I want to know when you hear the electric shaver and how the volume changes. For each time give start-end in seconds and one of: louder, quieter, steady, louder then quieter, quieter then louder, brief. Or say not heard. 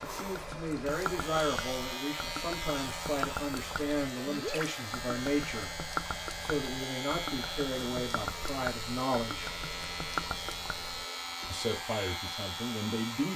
0.0-13.3 steady.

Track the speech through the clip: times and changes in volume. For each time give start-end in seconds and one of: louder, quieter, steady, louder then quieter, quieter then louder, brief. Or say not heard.
0.0-9.5 steady
11.4-13.3 brief.